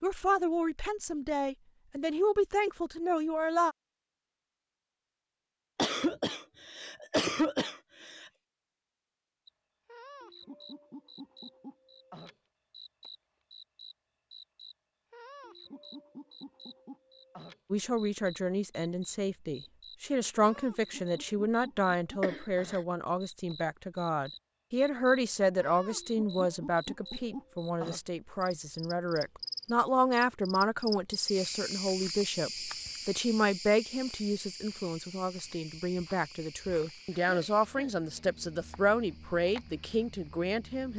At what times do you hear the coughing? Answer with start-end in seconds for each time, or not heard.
5.8-8.3, 22.2-22.8, 37.1-38.4.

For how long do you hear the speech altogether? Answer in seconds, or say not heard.
27 s.